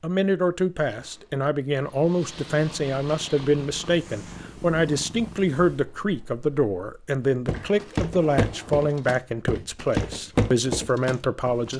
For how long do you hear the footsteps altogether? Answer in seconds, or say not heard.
4 s.